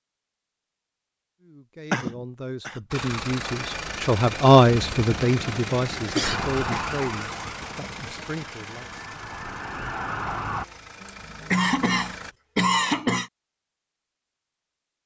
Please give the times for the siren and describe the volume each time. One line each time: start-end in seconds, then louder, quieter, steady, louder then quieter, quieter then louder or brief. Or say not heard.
6.2-10.7 quieter then louder.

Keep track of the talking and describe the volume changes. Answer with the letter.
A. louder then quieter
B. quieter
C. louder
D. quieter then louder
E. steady
A.